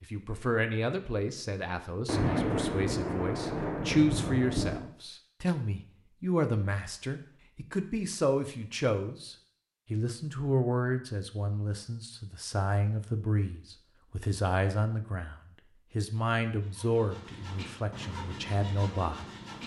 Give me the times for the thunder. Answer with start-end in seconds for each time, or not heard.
2.0-4.9.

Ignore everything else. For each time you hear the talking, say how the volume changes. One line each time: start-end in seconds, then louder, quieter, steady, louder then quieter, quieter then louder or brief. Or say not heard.
0.0-19.2 steady.